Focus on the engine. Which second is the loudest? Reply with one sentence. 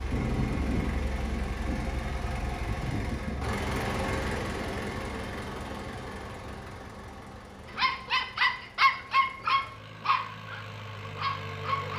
The volume of the engine peaks at 4 seconds.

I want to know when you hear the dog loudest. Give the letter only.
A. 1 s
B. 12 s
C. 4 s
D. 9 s
D.